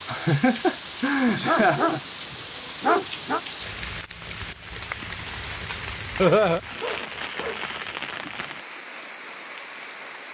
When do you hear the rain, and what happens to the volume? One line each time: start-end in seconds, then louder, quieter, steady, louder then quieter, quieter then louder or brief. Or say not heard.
0.0-10.2 steady.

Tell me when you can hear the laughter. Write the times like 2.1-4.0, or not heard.
0.1-2.0, 6.2-6.6.